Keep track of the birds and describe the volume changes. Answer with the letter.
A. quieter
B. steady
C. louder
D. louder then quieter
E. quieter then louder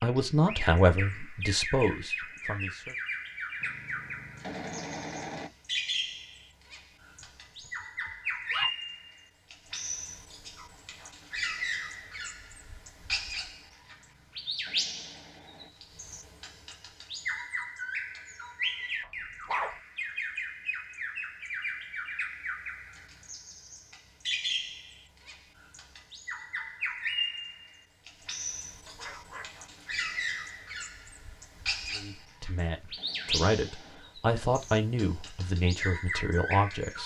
B.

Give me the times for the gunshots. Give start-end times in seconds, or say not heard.
3.6-5.5, 13.8-15.7, 32.1-34.0.